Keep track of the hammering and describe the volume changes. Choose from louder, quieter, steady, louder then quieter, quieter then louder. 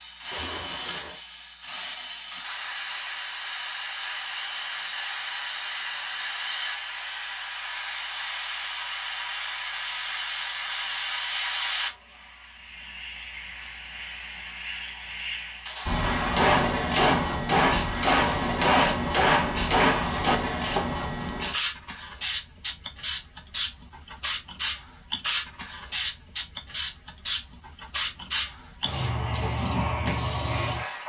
steady.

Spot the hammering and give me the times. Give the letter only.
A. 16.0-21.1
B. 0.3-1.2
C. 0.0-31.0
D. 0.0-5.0
A.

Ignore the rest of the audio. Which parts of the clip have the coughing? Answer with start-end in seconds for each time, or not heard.
0.3-1.2.